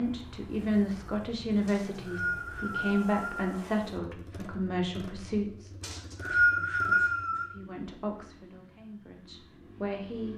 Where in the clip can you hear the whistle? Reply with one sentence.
You can hear the whistle from 1.6 to 3.4 s and from 5.8 to 7.5 s.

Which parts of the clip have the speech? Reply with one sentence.
You can hear the speech from 0.0 to 5.7 s and from 7.5 to 10.3 s.